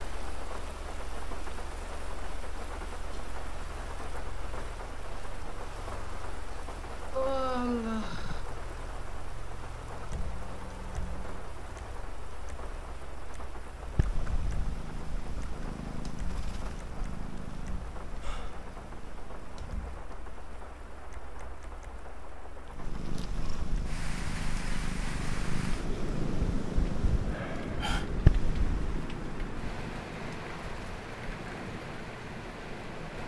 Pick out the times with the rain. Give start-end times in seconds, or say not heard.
0.0-33.2.